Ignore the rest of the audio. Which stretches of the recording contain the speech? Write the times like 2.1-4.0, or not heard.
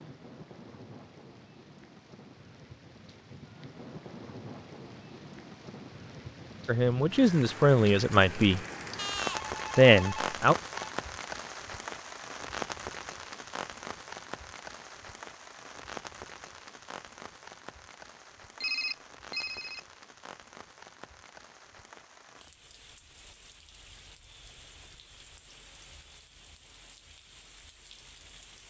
6.7-8.6, 9.8-10.6.